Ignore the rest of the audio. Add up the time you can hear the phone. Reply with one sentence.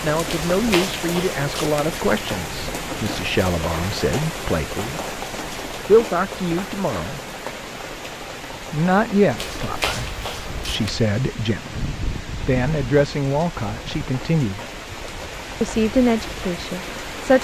You can hear the phone for 3 seconds altogether.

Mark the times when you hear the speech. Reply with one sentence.
The speech can be heard from 0.0 to 5.0 s, from 5.8 to 7.2 s, from 8.7 to 14.7 s and from 15.6 to 17.3 s.